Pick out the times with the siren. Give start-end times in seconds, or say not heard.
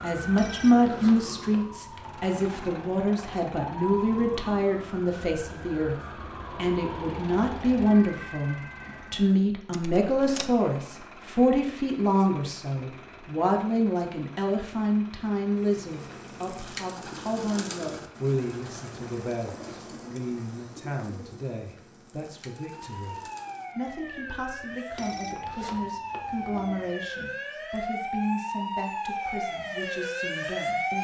0.0-9.2, 22.4-30.9.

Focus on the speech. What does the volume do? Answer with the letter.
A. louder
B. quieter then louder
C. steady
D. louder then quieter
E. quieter
E.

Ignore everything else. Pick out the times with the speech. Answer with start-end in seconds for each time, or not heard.
0.0-6.0, 6.5-30.9.